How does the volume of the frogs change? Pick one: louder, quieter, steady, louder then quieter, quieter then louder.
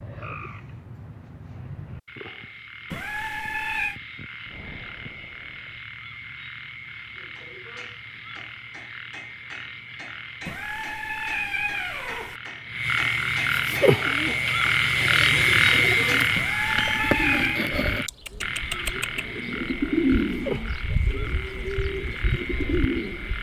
louder then quieter.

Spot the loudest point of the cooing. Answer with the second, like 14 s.
20 s.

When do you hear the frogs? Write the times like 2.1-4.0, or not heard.
0.0-23.3.